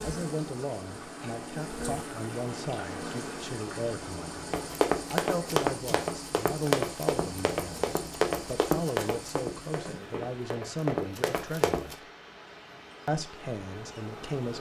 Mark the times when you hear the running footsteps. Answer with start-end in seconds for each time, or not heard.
4.5-11.9.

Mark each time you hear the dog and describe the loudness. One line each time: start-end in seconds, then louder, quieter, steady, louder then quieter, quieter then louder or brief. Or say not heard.
not heard.